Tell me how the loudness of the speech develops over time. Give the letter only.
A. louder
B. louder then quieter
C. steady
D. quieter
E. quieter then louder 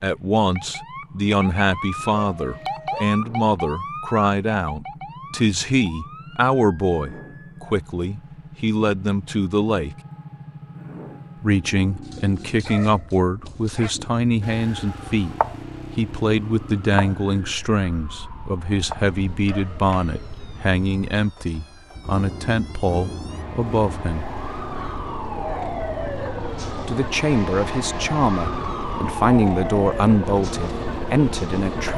C.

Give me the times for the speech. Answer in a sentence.
You can hear the speech from 0.0 to 9.9 s, from 11.4 to 15.3 s, from 15.9 to 24.2 s and from 26.6 to 31.9 s.